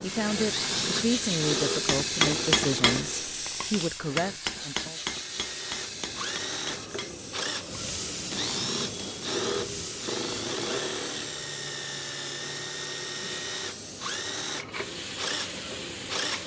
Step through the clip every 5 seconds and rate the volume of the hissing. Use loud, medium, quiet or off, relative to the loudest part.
loud, medium, medium, medium.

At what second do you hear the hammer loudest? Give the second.
2 s.